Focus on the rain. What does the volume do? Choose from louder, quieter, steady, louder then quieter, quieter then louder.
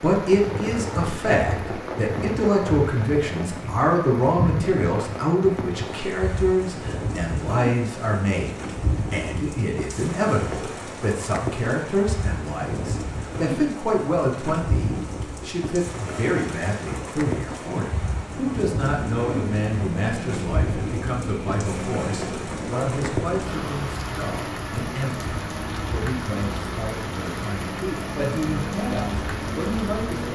steady.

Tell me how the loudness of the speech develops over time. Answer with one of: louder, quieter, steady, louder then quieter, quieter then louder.
quieter.